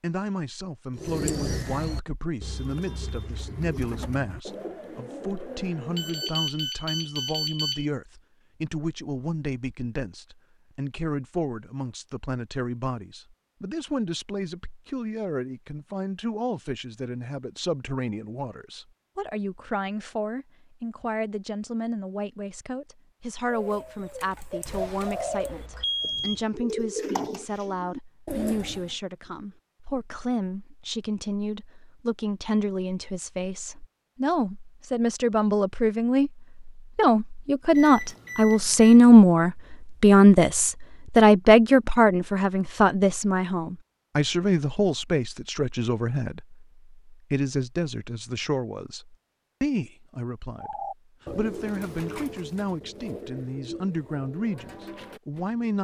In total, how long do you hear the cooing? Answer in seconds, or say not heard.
16 s.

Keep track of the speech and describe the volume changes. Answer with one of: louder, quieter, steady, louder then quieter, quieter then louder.
louder then quieter.